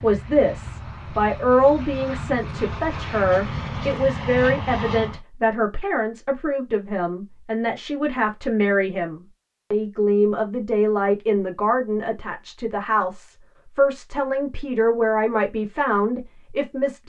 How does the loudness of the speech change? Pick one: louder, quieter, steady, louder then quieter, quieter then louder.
steady.